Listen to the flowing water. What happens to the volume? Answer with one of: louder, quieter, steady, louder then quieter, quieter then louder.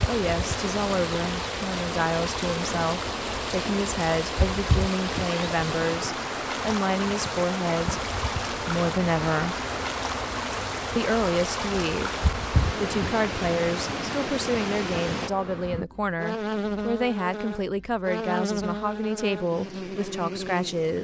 steady.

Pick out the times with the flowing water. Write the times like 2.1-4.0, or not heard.
0.0-15.3.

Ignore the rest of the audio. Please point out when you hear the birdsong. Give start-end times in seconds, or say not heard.
not heard.